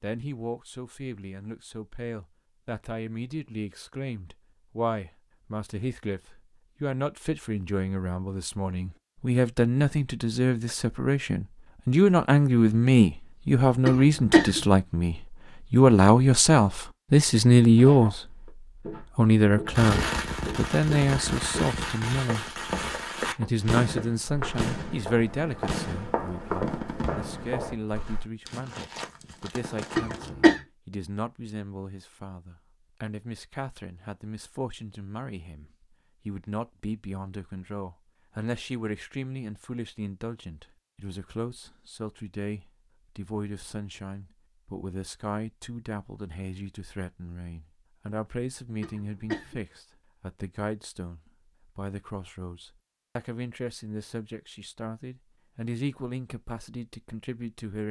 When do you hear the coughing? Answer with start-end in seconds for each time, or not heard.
13.8-14.6, 29.9-30.6, 48.8-49.6.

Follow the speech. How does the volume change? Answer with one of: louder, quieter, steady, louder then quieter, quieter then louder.
louder then quieter.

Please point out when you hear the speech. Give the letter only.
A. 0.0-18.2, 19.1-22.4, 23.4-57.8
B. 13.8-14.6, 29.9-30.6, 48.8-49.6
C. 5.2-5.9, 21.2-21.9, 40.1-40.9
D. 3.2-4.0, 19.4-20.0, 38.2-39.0
A.